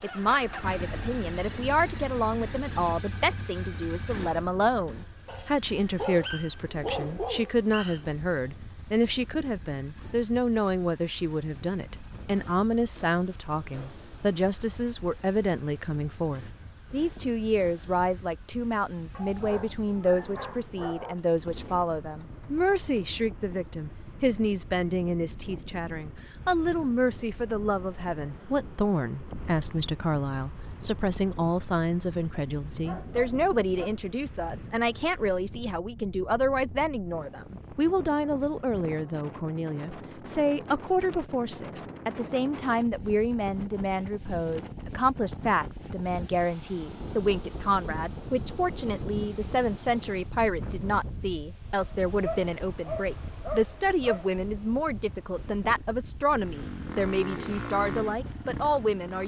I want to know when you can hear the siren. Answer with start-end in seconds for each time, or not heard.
not heard.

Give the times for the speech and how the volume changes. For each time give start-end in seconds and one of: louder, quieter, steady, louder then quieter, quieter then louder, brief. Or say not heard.
0.0-59.2 steady.